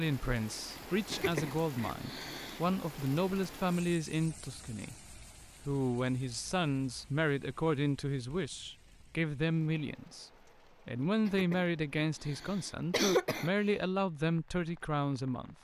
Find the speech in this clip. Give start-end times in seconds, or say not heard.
0.0-15.5.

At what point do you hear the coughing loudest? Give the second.
13 s.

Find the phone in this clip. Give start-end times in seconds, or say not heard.
not heard.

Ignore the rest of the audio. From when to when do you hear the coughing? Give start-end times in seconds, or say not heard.
1.1-2.6, 11.2-13.5.